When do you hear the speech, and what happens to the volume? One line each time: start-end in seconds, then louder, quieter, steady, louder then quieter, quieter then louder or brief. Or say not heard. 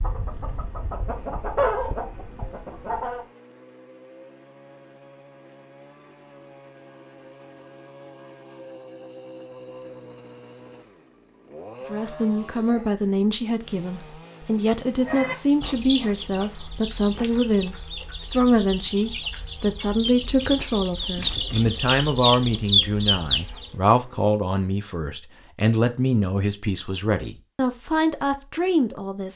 11.9-29.3 steady.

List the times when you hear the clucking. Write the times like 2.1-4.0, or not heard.
0.0-3.2, 15.0-23.7.